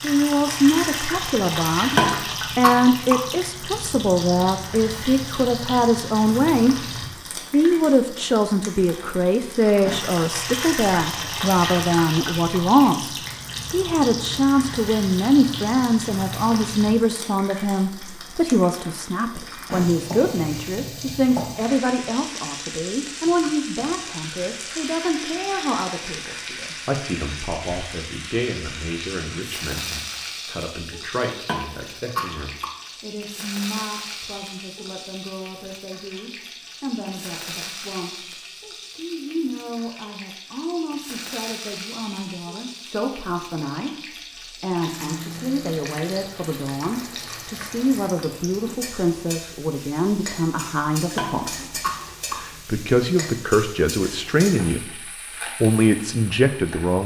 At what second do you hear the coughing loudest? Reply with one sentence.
The loudest moment of the coughing is at 2 seconds.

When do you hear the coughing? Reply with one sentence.
The coughing can be heard from 1.9 to 3.1 s, from 31.4 to 32.6 s and from 51.1 to 52.4 s.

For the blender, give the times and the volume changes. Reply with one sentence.
You can't hear the blender here.